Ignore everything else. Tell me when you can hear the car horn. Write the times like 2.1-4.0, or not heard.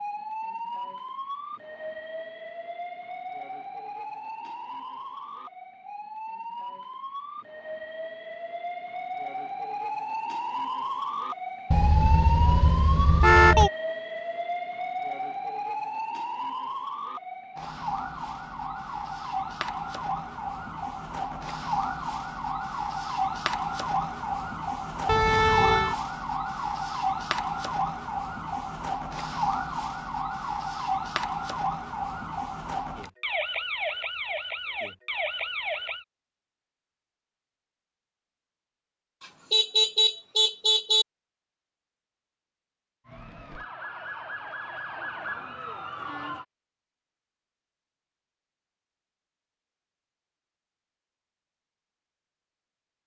11.7-13.7, 25.1-25.9, 39.5-41.0.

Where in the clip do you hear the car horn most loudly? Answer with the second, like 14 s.
13 s.